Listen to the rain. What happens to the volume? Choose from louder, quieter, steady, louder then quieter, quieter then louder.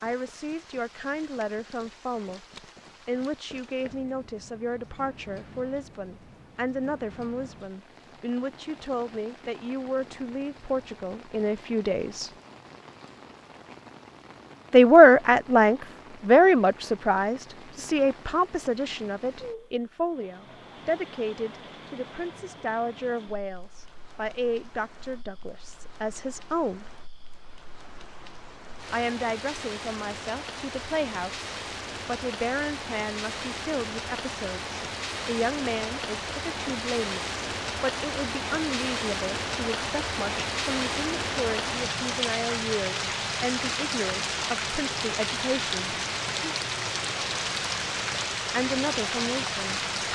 louder.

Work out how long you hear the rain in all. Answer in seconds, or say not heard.
50 s.